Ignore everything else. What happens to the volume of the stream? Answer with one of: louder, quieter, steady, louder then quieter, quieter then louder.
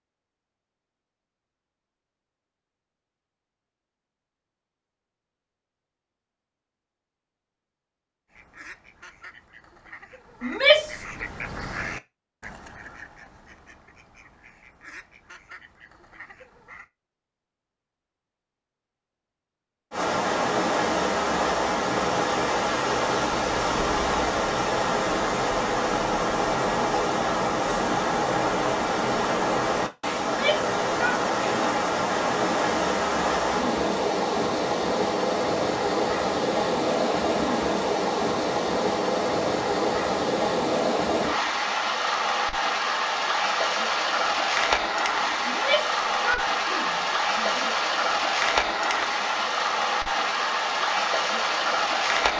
steady.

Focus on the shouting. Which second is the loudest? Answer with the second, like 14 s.
11 s.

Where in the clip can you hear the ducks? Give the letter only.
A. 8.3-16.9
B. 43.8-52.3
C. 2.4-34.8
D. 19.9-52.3
A.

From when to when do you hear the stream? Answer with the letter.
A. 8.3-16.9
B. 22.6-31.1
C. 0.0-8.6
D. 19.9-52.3
D.